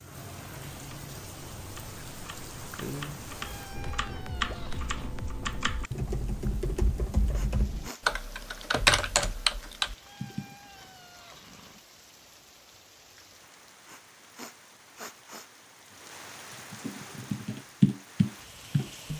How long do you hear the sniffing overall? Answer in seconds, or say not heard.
2 s.